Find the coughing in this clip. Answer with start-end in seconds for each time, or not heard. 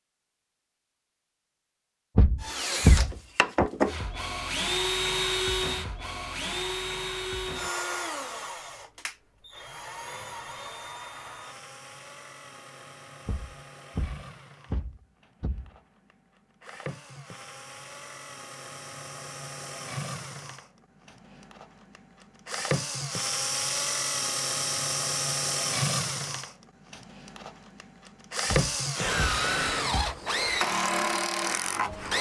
not heard.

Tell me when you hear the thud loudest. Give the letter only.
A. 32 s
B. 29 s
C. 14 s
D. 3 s
D.